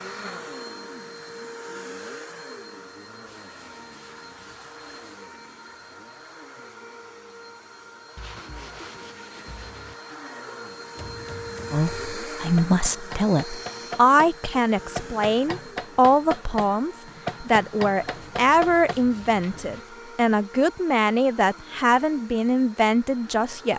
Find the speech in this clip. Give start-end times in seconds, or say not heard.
11.7-23.7.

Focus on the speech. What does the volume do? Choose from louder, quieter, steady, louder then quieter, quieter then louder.
steady.